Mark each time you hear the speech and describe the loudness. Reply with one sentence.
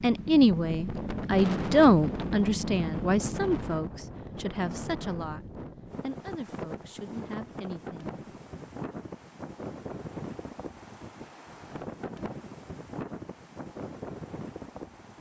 The speech can be heard from 0.0 to 8.2 s, getting quieter.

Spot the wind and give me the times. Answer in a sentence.
You can hear the wind from 0.0 to 15.1 s.